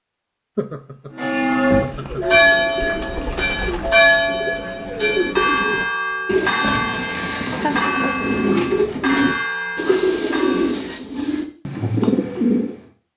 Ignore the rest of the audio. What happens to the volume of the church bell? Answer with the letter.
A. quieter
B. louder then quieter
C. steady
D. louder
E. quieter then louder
A.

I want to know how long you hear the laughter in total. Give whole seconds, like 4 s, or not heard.
2 s.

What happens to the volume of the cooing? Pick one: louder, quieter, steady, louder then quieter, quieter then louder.
louder.